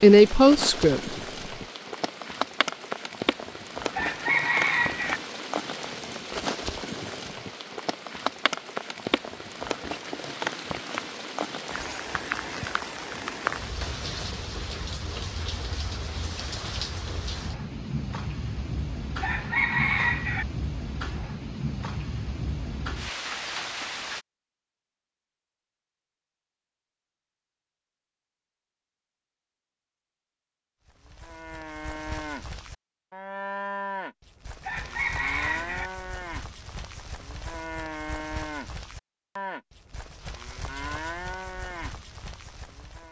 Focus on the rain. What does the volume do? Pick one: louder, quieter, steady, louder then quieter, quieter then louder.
steady.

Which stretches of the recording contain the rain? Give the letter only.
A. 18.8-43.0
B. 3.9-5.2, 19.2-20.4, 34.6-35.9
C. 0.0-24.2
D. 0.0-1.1
C.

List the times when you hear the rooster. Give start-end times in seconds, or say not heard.
3.9-5.2, 19.2-20.4, 34.6-35.9.